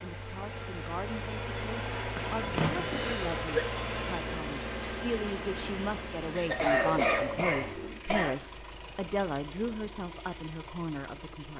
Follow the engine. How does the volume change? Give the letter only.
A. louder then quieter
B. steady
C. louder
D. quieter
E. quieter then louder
D.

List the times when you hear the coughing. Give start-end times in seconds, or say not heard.
2.1-3.6, 6.3-8.3.